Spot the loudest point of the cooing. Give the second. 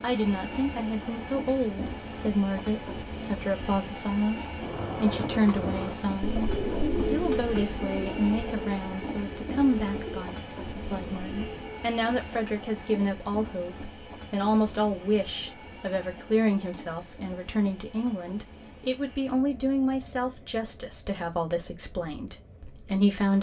7 s.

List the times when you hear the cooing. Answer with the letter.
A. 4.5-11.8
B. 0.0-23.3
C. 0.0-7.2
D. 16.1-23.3
A.